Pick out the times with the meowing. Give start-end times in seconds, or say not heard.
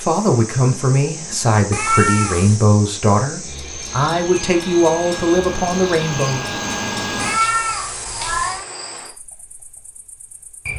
1.7-2.6, 7.2-8.7.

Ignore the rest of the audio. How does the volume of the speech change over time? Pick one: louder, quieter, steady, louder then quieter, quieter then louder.
steady.